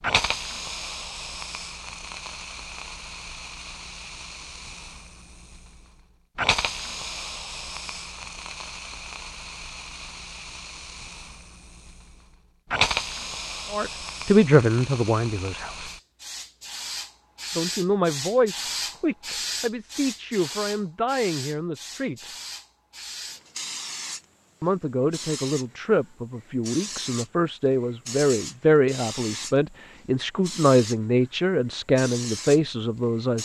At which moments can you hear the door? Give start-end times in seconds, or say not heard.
not heard.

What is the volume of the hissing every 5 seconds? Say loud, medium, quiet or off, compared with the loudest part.
loud, loud, loud, loud, medium, medium, medium.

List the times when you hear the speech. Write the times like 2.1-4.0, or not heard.
13.7-15.9, 17.6-22.3, 24.6-33.4.